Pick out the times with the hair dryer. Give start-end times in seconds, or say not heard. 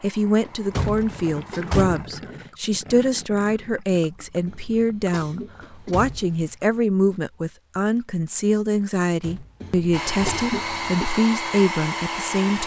0.0-2.0, 9.9-12.6.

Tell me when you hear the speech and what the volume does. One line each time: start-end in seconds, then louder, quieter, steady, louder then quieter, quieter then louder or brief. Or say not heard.
0.0-12.6 steady.